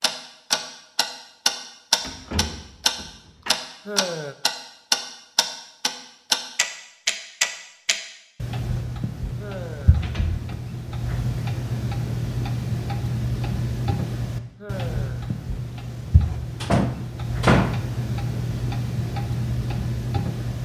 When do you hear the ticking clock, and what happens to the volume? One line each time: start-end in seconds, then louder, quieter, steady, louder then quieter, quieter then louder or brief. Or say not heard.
0.0-20.5 quieter.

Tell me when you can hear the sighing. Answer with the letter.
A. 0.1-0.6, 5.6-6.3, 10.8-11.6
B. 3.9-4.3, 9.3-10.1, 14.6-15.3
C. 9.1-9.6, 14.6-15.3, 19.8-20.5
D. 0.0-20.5
B.